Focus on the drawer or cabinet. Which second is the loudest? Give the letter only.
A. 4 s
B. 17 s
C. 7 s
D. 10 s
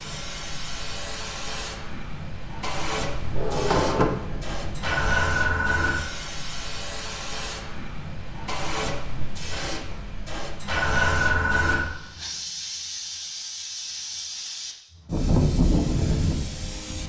A.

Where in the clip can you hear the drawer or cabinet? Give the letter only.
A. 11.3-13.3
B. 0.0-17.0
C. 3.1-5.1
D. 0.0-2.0
C.